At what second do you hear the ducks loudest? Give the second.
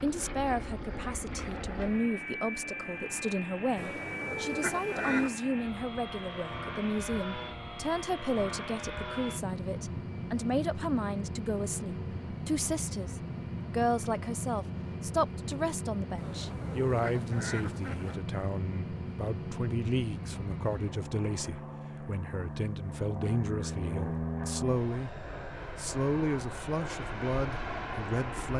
5 s.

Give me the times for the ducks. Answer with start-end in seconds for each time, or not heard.
3.8-5.3, 16.1-18.2.